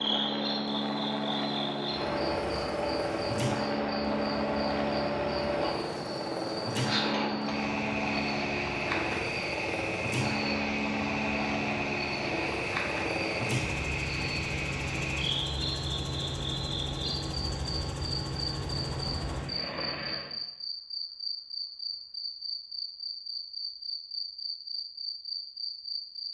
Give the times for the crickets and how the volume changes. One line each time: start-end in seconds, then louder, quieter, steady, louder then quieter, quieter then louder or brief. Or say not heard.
0.0-26.2 steady.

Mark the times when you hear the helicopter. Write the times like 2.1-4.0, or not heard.
0.0-20.4.